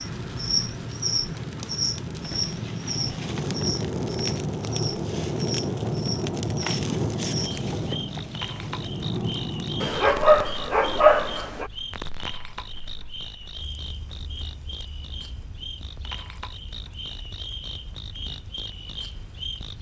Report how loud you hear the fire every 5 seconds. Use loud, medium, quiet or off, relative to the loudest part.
loud, loud, quiet, quiet.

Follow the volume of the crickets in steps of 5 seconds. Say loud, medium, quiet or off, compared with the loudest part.
loud, medium, medium, medium.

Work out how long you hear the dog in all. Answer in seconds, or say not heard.
2 s.